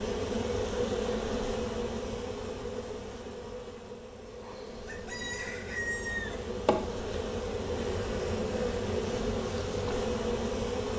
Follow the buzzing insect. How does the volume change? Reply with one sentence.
The volume of the buzzing insect goes down, then up.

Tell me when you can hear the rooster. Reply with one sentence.
You can hear the rooster from 4.8 to 6.5 s.